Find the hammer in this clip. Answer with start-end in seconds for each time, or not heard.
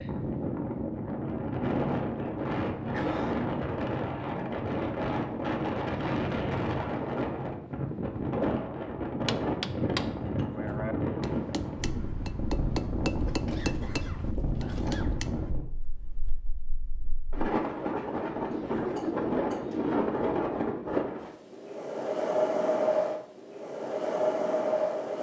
9.2-15.5.